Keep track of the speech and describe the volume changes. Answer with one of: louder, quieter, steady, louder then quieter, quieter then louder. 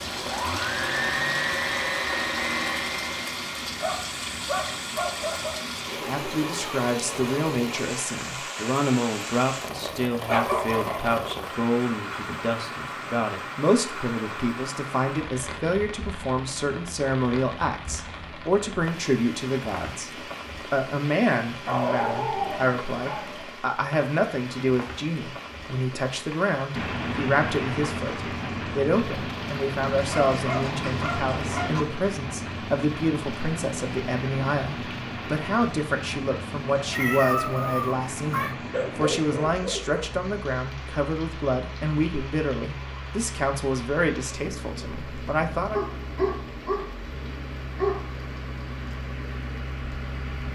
steady.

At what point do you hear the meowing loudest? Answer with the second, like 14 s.
37 s.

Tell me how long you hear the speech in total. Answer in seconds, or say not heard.
39 s.